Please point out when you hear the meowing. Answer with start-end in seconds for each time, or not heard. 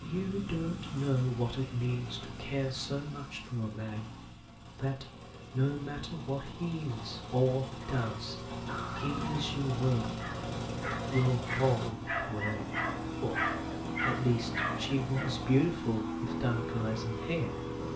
not heard.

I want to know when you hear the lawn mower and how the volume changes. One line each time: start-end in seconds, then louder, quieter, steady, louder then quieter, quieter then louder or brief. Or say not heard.
0.0-17.9 louder.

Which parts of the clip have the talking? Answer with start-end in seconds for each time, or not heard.
0.0-4.1, 4.8-10.2, 11.1-13.4, 14.0-17.6.